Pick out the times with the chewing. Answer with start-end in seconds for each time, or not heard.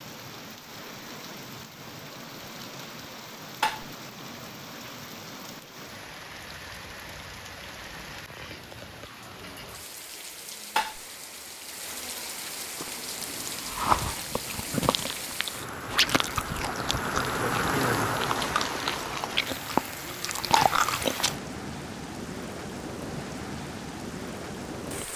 12.8-21.4.